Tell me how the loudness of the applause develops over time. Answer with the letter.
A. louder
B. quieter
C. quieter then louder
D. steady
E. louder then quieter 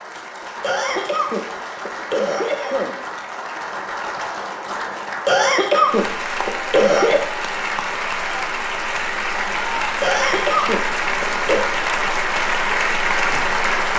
A.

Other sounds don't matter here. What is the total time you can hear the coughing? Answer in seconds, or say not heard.
6 s.